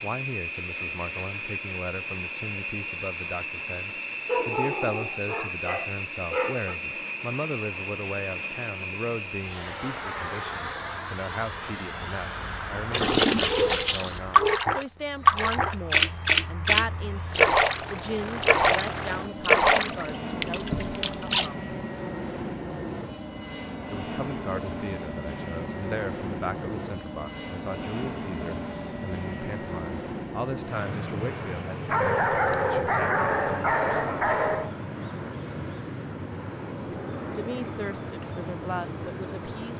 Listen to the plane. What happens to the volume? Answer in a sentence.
The loudness of the plane stays about the same.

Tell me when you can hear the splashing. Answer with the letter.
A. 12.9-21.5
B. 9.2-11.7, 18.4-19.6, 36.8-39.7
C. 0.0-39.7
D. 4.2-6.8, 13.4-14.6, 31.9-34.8
A.